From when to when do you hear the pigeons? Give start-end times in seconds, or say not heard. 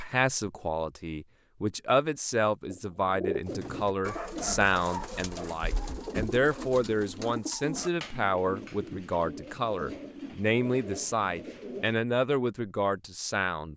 2.7-11.9.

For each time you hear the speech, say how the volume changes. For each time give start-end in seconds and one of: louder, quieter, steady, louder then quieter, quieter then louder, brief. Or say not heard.
0.0-13.7 steady.